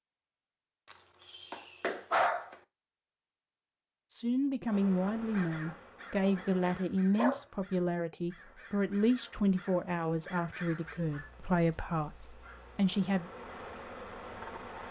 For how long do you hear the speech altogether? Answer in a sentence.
The speech can be heard for 9 seconds in total.